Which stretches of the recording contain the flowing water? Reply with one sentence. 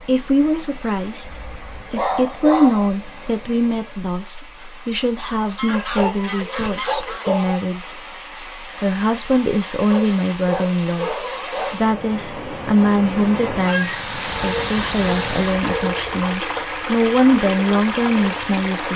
The flowing water can be heard from 0.0 to 18.9 s.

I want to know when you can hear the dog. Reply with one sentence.
The dog can be heard from 1.2 to 2.9 s, from 5.7 to 7.6 s, from 9.8 to 11.8 s and from 14.3 to 16.2 s.